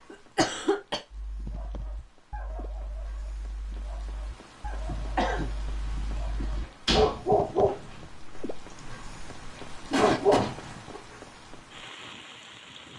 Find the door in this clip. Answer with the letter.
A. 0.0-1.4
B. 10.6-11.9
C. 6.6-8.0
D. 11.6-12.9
C.